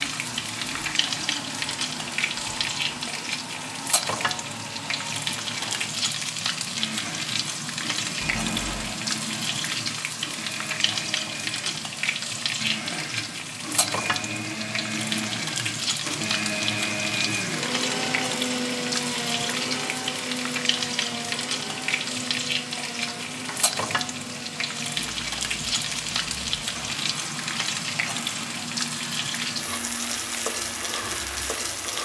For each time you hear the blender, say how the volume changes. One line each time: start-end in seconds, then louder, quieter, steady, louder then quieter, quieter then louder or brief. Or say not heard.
0.0-31.7 louder then quieter.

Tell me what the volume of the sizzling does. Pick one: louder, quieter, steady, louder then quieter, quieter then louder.
steady.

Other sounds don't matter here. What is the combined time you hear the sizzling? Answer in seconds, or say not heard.
32 s.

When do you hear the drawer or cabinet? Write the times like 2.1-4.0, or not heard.
8.2-9.0, 23.1-24.1.